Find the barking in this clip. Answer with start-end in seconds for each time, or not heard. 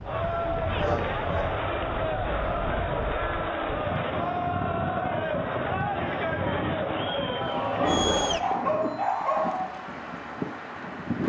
0.2-1.4, 7.5-9.7.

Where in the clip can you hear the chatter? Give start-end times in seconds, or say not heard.
0.0-8.4.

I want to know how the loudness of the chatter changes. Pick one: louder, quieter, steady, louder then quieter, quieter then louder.
steady.